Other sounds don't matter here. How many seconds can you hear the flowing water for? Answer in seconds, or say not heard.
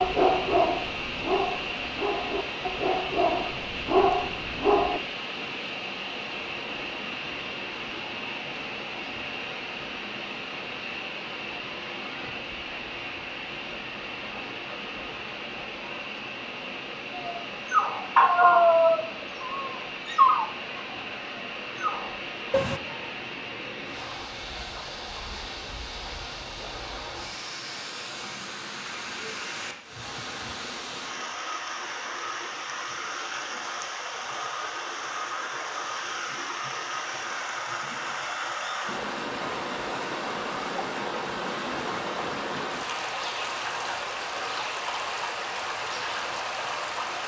47 s.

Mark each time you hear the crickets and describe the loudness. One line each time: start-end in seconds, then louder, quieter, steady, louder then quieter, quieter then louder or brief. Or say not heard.
not heard.